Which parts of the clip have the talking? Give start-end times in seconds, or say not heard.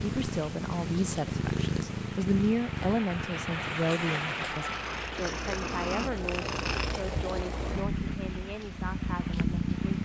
0.0-9.9.